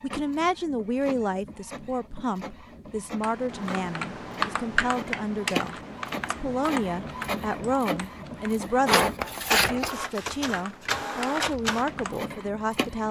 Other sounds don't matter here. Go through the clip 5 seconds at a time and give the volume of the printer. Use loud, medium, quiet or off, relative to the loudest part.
quiet, loud, loud.